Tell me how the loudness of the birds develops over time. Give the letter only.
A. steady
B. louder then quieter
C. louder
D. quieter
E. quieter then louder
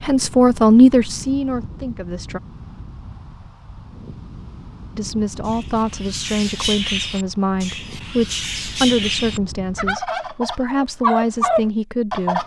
E.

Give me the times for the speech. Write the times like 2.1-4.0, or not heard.
0.0-2.4, 5.0-12.4.